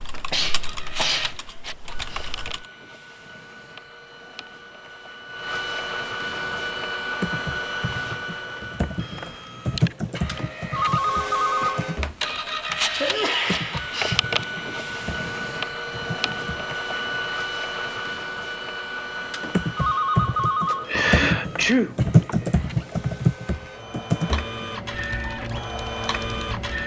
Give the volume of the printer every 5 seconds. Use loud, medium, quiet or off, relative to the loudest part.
medium, loud, loud, loud, medium, loud.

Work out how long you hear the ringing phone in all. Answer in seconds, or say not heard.
3 s.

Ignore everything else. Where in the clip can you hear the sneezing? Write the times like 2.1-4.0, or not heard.
0.3-1.4, 13.0-14.1, 20.9-22.4.